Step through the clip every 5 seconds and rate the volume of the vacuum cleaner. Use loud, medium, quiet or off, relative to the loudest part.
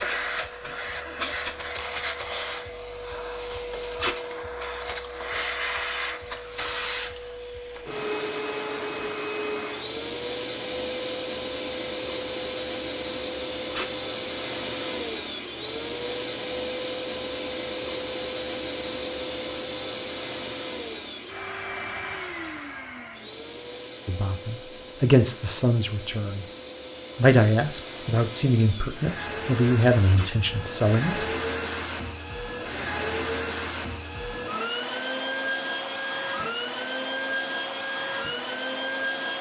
loud, loud, loud, loud, medium, medium, loud, loud.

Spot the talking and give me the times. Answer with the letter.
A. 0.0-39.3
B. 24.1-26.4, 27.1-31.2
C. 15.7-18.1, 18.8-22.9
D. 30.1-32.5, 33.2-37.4
B.